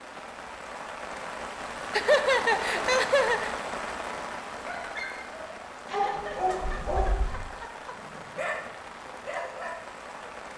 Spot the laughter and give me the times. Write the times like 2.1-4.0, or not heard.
1.9-3.5, 5.8-8.2.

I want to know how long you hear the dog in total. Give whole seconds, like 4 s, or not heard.
6 s.